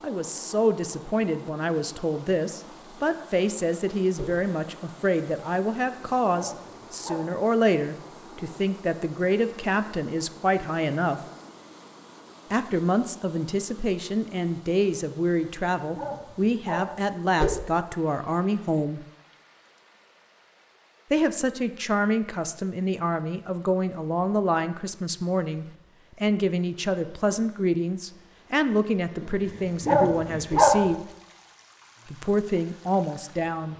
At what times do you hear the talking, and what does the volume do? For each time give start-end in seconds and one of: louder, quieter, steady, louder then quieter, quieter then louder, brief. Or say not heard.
0.0-11.2 steady
12.5-19.0 steady
21.1-31.1 steady
32.1-33.7 brief.